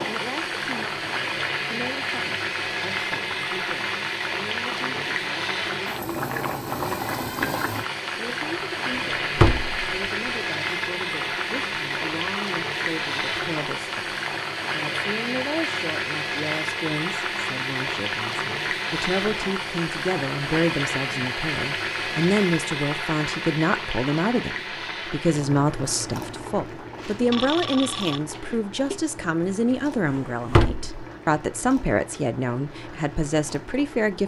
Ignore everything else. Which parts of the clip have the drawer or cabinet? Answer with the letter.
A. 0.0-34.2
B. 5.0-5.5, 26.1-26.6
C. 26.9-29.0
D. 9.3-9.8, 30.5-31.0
D.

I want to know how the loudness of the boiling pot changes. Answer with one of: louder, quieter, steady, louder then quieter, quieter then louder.
quieter.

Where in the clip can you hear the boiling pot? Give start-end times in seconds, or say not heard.
0.0-34.2.